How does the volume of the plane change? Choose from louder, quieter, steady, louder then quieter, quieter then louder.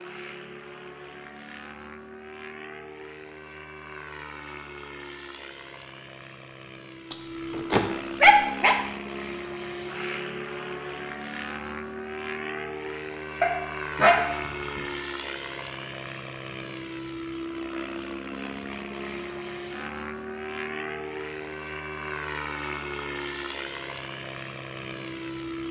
louder.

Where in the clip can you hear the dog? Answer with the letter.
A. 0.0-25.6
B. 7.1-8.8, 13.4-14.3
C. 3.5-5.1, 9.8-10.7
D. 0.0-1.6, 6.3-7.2
B.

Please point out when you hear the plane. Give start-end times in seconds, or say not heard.
0.0-25.6.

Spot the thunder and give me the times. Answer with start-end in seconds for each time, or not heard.
not heard.